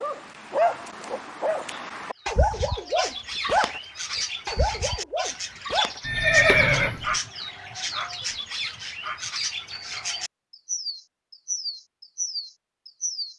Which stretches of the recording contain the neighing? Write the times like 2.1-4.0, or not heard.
6.0-7.2.